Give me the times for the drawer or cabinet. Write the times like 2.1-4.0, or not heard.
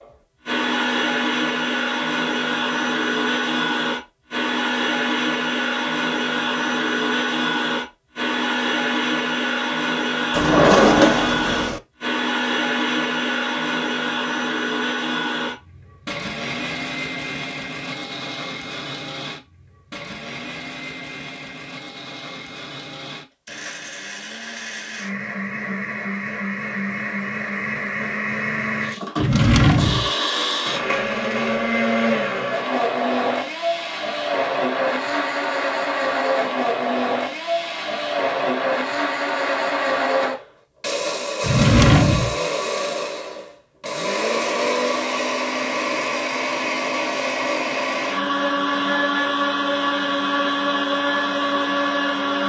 10.3-11.8, 29.1-30.1, 41.4-42.4.